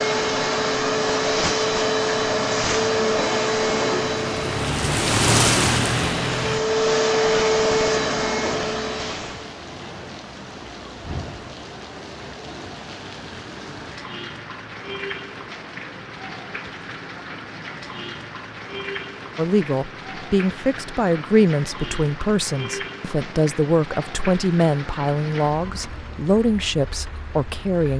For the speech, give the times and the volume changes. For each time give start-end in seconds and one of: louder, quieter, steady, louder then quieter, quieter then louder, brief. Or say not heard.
19.4-27.9 steady.